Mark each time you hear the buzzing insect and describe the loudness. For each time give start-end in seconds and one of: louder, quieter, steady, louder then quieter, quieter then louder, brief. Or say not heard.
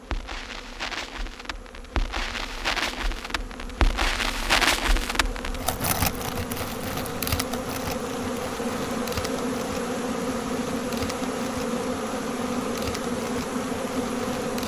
0.0-14.6 louder.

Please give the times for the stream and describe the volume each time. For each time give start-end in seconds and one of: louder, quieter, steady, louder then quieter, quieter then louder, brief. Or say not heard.
not heard.